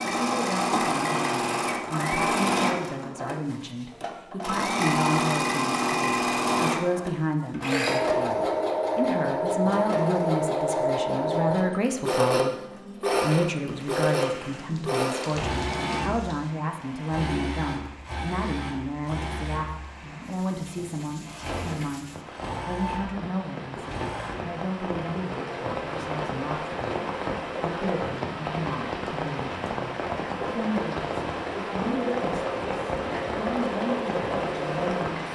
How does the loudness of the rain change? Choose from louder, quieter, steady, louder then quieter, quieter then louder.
louder.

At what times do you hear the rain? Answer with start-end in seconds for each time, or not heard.
13.7-35.3.